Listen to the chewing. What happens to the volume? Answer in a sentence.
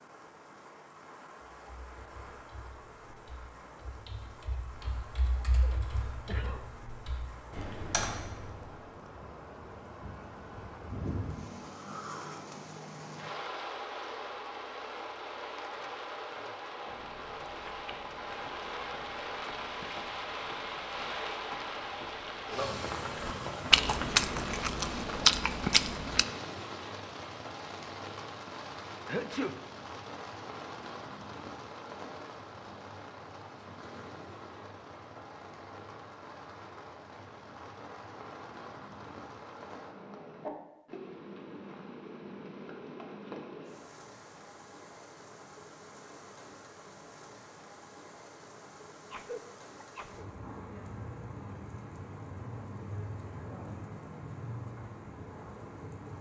The loudness of the chewing goes up.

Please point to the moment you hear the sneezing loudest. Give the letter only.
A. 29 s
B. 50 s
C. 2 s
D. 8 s
A.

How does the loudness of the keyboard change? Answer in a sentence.
The loudness of the keyboard goes up.